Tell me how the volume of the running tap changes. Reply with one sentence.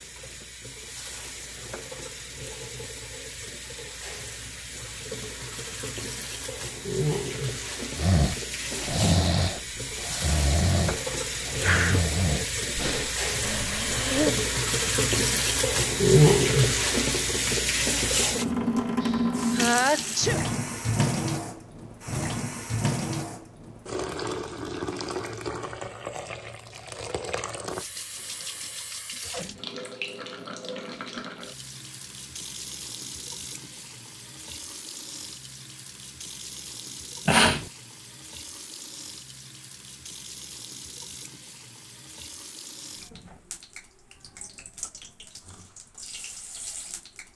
The volume of the running tap goes up, then down.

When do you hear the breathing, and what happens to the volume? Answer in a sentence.
The breathing can be heard from 8.0 to 14.4 s, getting quieter.